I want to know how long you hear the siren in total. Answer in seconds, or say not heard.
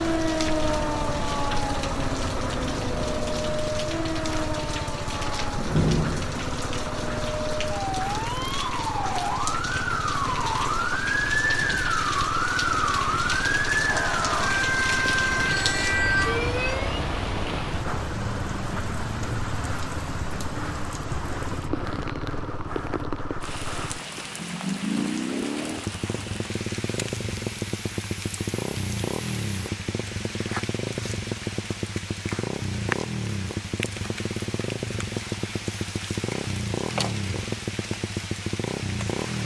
17 s.